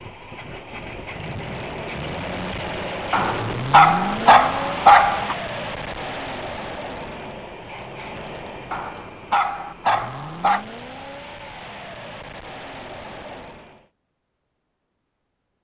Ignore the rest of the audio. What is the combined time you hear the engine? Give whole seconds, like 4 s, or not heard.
14 s.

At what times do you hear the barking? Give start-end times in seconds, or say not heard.
3.1-5.3, 8.7-10.7.